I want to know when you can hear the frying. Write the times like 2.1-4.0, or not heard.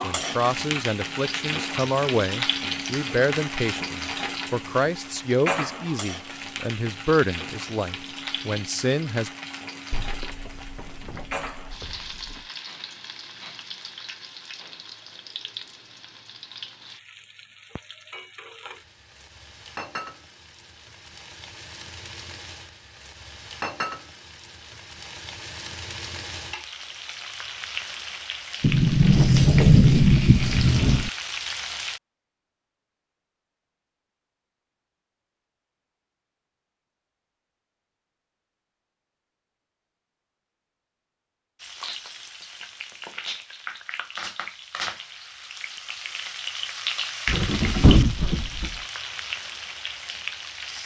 0.0-32.0, 41.5-50.8.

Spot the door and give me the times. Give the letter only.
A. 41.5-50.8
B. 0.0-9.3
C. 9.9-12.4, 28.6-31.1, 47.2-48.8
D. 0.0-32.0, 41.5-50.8
C.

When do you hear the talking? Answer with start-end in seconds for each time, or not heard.
0.0-9.3.